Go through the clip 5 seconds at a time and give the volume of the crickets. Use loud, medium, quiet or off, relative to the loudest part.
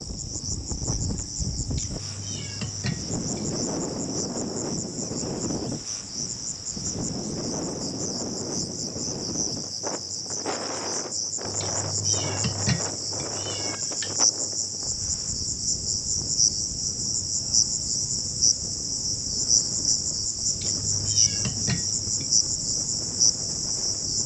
medium, medium, loud, loud, loud.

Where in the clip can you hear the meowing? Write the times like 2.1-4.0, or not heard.
1.6-3.5, 11.4-14.2, 20.4-22.3.